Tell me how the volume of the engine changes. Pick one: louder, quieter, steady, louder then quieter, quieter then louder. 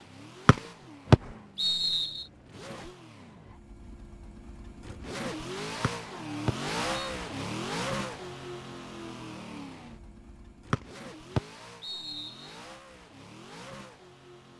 louder then quieter.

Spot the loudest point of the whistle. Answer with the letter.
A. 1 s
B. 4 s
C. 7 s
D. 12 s
A.